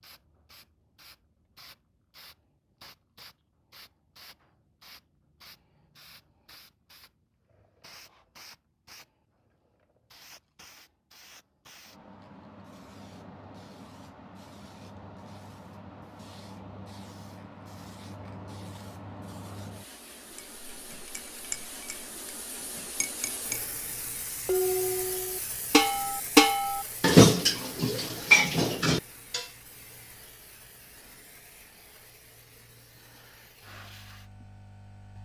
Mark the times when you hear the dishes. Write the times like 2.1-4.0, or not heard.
20.4-22.1, 22.9-23.6, 24.4-29.5.